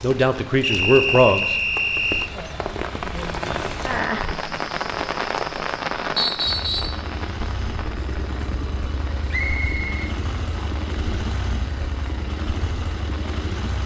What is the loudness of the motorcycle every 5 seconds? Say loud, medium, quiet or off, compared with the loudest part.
off, loud, loud.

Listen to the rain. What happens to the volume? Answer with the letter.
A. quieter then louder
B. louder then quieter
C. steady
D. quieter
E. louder
B.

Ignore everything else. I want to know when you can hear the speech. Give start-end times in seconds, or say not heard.
0.0-1.6.